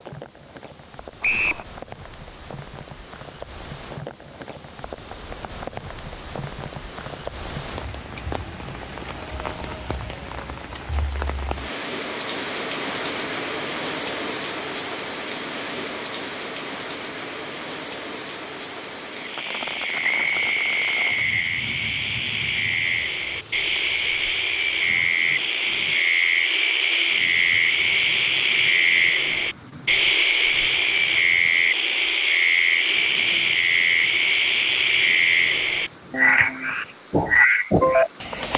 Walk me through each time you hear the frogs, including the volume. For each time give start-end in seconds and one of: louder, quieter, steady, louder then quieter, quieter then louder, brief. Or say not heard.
19.1-38.5 louder.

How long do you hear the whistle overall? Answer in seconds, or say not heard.
2 s.